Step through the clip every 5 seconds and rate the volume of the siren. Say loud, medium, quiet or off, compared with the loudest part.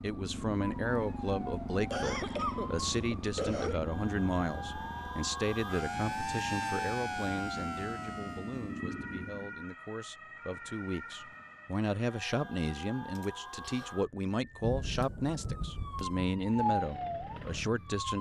medium, loud, medium, loud.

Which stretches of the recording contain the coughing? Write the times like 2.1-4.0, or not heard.
1.9-3.8, 13.2-13.9.